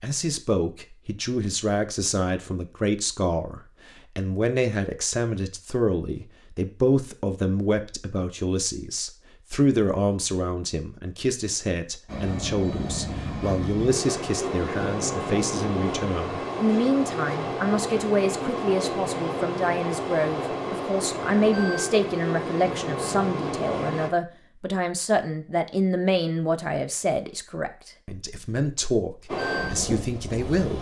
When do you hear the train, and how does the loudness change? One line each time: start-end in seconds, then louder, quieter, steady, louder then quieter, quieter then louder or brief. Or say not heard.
12.1-24.1 steady
29.2-30.7 brief.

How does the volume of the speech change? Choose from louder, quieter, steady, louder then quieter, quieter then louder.
steady.